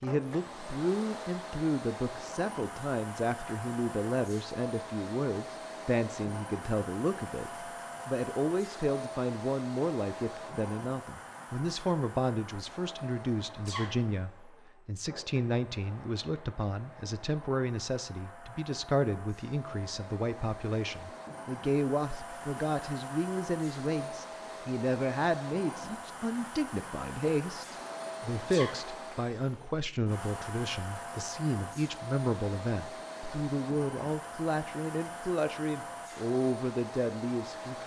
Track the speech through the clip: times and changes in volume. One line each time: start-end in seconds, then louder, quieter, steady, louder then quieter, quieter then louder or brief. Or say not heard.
0.0-37.8 steady.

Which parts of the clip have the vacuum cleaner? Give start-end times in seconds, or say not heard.
0.0-37.8.